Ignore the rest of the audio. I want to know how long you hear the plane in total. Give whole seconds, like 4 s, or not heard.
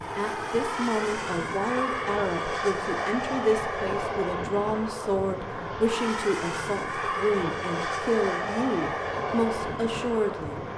11 s.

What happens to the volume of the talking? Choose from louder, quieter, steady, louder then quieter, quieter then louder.
steady.